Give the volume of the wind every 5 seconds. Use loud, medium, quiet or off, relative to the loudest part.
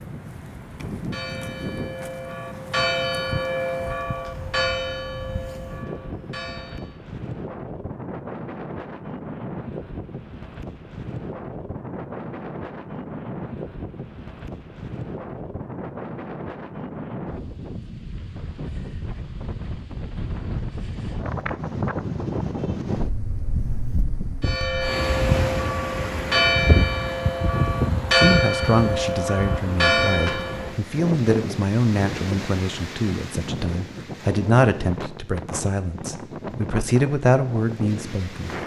medium, medium, medium, medium, loud, loud, medium, medium.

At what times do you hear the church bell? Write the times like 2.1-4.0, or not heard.
0.9-7.0, 24.4-30.8.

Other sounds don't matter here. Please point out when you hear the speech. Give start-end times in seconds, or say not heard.
28.1-38.5.